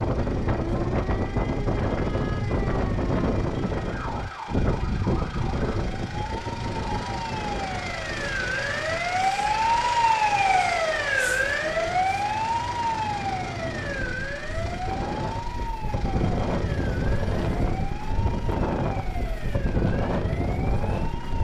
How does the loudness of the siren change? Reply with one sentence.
The volume of the siren goes up, then down.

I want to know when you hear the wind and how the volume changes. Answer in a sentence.
The wind can be heard from 0.0 to 21.3 s, getting quieter then louder.